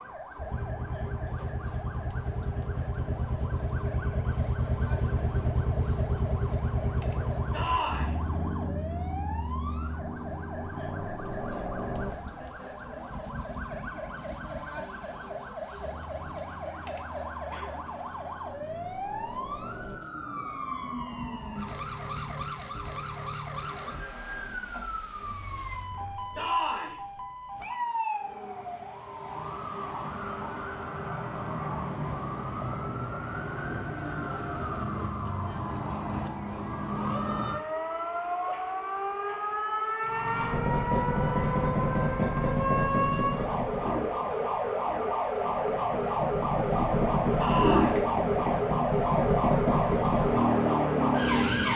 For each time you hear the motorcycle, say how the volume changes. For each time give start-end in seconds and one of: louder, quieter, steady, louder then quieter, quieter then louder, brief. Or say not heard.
0.0-26.4 quieter
40.0-51.7 quieter then louder.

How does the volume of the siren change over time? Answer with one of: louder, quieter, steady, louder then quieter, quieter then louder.
louder.